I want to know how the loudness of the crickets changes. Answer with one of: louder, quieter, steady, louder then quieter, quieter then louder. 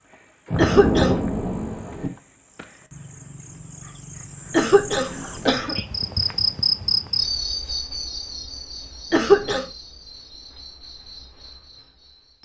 louder then quieter.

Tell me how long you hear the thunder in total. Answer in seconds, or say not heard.
2 s.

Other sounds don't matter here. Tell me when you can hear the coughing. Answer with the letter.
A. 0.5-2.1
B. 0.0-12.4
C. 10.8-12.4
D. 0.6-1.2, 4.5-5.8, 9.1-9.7
D.